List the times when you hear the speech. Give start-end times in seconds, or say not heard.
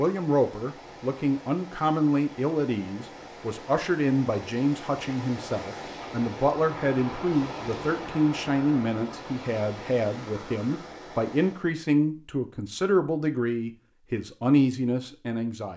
0.0-15.7.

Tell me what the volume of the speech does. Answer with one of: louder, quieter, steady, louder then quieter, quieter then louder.
steady.